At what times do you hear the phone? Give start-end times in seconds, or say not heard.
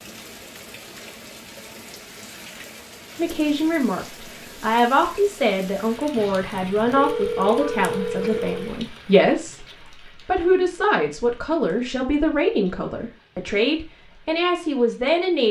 6.2-8.8.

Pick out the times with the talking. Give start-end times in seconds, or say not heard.
3.1-9.7, 10.2-15.4.